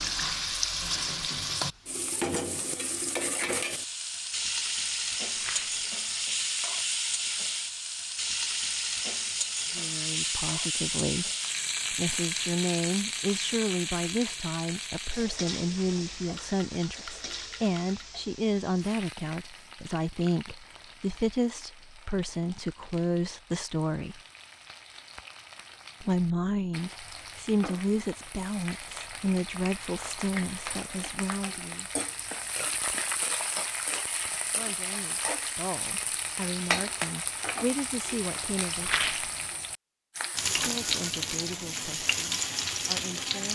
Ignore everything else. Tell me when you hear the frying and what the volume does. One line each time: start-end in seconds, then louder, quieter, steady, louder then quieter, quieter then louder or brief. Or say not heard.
0.0-43.5 quieter then louder.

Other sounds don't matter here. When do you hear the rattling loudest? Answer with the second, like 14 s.
39 s.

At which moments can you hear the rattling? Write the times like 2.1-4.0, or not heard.
5.3-5.8, 16.2-18.1, 38.8-39.3.